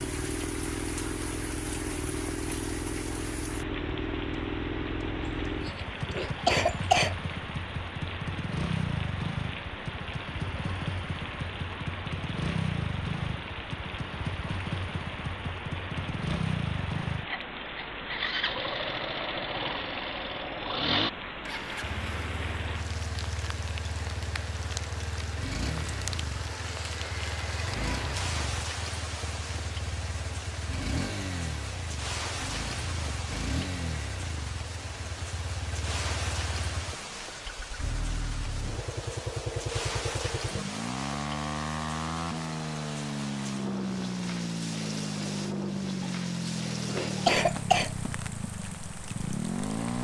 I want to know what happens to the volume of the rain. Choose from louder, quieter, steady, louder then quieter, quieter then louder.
steady.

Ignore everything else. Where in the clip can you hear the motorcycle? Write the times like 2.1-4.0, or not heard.
0.0-49.9.